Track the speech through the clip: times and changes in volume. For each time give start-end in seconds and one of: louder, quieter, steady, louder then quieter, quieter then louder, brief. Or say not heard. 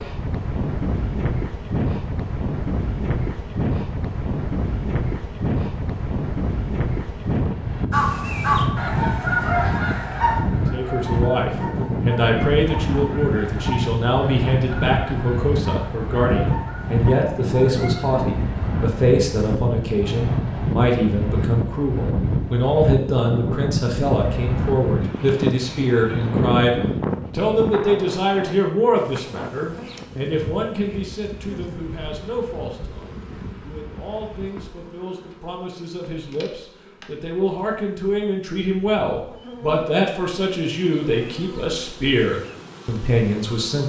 10.7-43.8 quieter then louder.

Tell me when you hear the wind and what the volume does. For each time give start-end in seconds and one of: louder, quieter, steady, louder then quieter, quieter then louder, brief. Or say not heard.
0.0-34.5 quieter.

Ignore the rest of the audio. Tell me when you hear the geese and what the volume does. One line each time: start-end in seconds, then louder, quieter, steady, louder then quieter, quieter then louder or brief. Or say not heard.
7.9-18.4 quieter.